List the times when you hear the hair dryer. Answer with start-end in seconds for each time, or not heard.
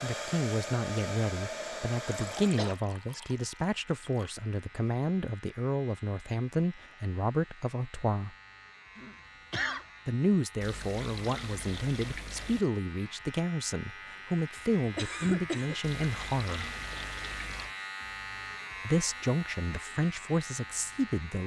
0.0-2.8.